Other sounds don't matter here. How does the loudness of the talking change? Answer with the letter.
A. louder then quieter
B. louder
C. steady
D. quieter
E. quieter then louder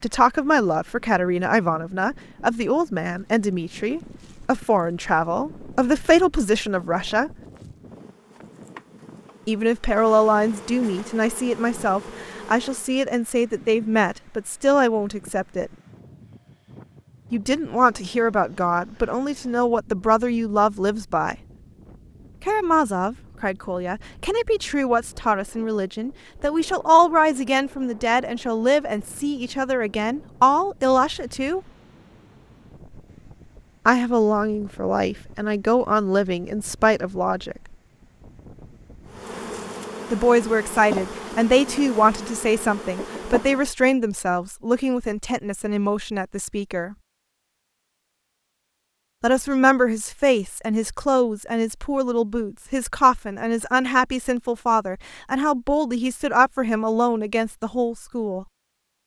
C.